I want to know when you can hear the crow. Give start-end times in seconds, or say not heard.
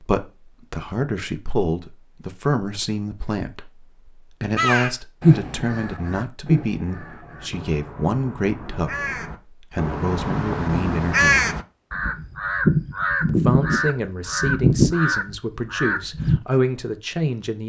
4.5-16.4.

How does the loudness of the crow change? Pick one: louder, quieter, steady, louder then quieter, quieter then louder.
quieter then louder.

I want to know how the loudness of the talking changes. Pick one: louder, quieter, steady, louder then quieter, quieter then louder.
steady.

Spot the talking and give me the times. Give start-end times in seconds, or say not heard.
0.0-11.5, 13.2-17.6.